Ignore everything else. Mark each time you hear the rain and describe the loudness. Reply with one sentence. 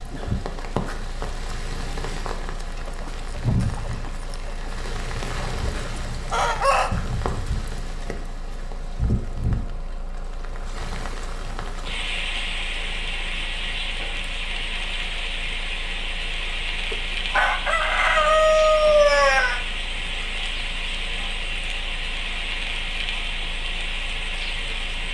The rain can be heard from 0.0 to 25.0 s, at a steady volume.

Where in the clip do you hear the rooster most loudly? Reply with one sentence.
The volume of the rooster peaks at 19 seconds.